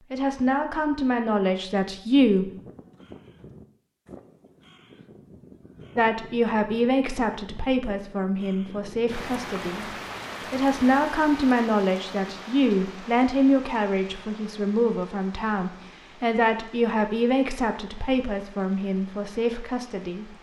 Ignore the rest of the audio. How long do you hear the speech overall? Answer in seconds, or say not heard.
16 s.